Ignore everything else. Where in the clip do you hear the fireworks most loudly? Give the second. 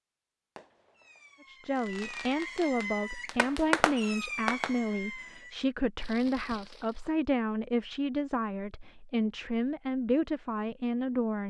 4 s.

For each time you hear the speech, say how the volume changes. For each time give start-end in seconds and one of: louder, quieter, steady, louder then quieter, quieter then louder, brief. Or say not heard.
1.4-11.4 steady.